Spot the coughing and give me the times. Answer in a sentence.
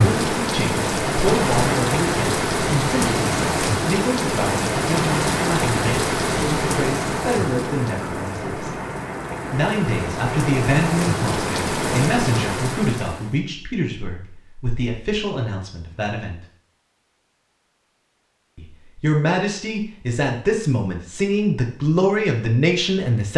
You can't hear the coughing here.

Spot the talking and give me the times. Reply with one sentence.
You can hear the talking from 0.0 to 8.7 s, from 9.5 to 16.4 s and from 18.6 to 23.3 s.